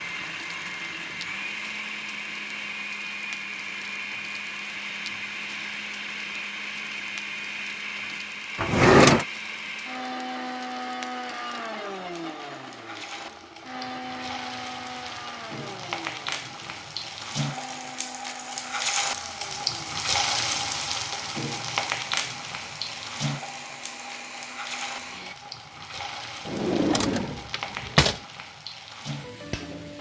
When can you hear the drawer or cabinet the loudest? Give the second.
9 s.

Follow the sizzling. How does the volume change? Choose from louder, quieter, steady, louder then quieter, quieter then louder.
louder then quieter.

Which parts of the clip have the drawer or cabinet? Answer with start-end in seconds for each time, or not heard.
8.6-9.2, 26.4-28.2.